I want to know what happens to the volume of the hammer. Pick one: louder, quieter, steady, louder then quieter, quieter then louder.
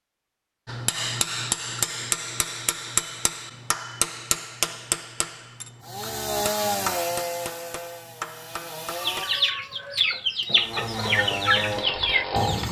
quieter.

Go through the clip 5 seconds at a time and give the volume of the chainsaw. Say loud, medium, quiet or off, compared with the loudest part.
off, loud, loud.